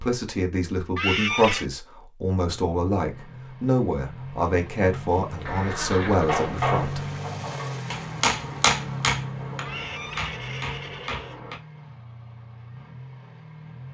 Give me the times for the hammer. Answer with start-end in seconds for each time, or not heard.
6.2-11.6.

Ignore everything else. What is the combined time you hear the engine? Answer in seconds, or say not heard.
11 s.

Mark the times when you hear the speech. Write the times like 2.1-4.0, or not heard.
0.0-7.0.